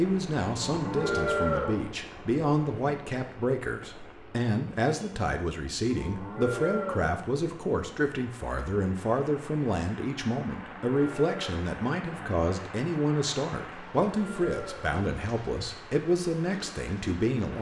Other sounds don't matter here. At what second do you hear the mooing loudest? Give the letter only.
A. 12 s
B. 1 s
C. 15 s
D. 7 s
B.